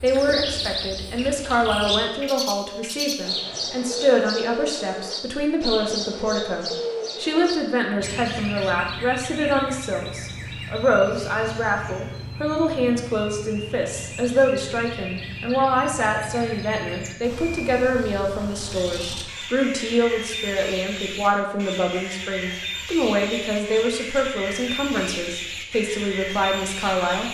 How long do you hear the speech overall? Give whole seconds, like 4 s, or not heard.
27 s.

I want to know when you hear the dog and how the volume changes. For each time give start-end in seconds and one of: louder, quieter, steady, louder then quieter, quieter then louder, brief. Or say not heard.
not heard.